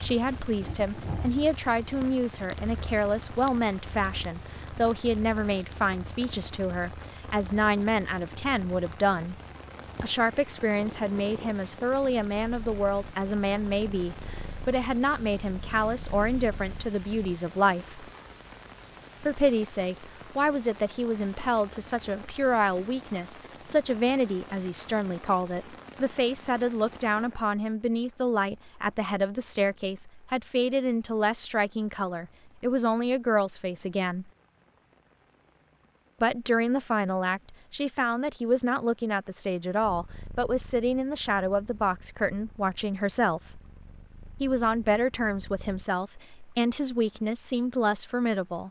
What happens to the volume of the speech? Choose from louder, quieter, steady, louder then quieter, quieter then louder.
steady.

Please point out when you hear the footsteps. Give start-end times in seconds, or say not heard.
not heard.